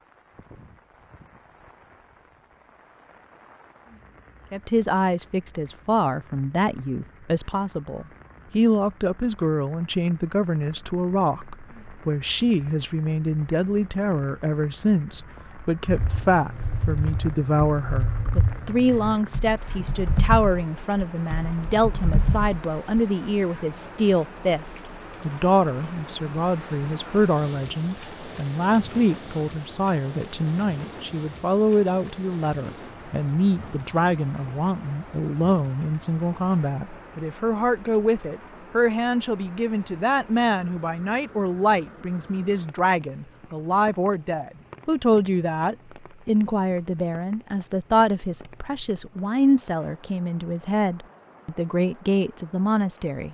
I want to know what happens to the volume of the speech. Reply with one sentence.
The volume of the speech stays about the same.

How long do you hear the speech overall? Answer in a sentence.
You can hear the speech for 49 seconds altogether.